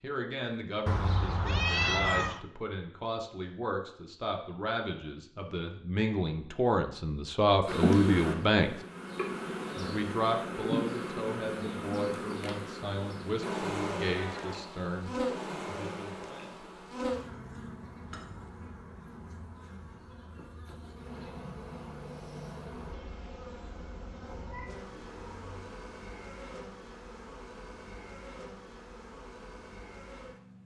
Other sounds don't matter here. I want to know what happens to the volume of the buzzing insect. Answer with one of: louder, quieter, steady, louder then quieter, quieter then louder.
quieter.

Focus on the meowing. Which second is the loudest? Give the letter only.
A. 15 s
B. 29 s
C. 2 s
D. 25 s
C.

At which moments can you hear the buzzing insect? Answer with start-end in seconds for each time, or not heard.
7.7-30.6.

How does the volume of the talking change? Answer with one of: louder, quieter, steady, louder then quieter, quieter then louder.
louder then quieter.